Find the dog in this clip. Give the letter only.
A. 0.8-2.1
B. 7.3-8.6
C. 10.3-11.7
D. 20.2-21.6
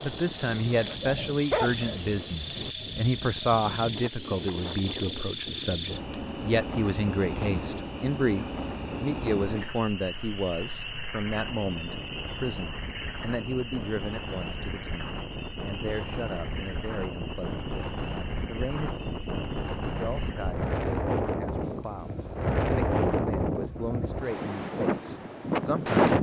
A.